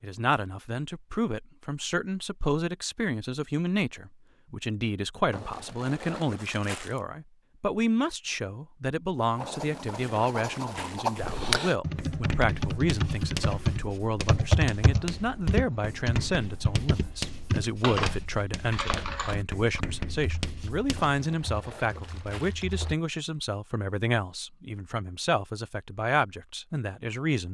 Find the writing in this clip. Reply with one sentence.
You can hear the writing from 9.3 to 21.2 s.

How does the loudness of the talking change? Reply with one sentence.
The loudness of the talking stays about the same.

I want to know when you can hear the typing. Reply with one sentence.
The typing can be heard from 11.2 to 22.9 s.